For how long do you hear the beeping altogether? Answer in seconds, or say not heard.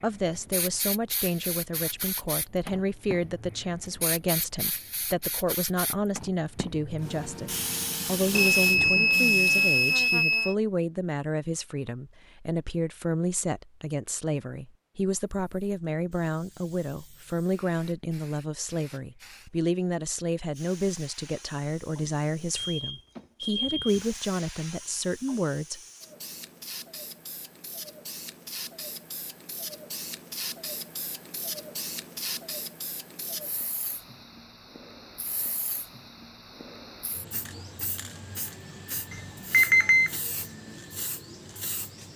5 s.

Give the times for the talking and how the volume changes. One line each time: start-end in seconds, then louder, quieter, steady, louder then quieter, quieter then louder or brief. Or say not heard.
0.0-25.8 steady.